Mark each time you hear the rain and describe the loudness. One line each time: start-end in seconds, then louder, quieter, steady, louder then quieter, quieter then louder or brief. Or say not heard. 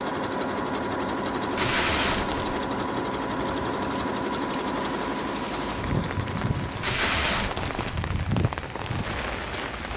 0.0-9.9 louder.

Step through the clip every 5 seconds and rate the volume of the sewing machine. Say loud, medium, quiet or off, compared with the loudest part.
loud, medium.